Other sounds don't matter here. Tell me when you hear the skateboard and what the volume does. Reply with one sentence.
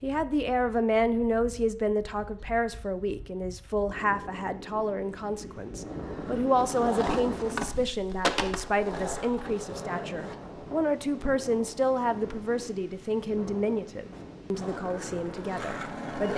The skateboard can be heard from 5.8 to 10.3 s, getting louder then quieter; and briefly from 14.6 to 16.3 s.